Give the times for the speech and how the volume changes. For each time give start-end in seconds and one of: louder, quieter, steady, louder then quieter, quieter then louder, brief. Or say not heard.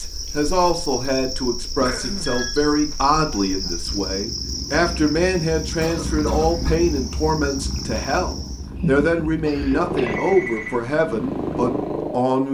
0.0-12.4 steady.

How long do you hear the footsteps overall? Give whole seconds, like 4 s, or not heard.
not heard.